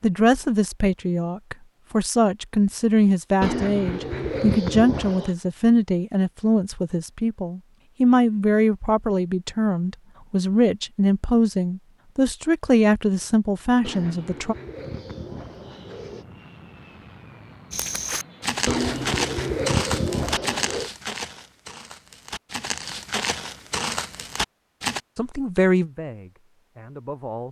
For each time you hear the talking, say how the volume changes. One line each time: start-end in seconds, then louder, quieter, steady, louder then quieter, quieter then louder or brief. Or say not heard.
0.0-14.6 steady
25.1-27.4 brief.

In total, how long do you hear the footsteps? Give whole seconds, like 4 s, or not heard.
7 s.